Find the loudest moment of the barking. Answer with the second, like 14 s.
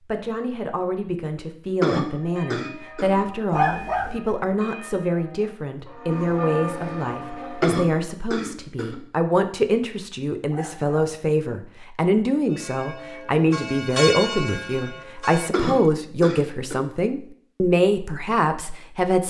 4 s.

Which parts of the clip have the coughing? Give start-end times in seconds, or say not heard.
1.8-3.1, 7.6-9.0, 15.5-16.8.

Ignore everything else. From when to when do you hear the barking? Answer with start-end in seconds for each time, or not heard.
3.5-4.2, 10.5-11.2.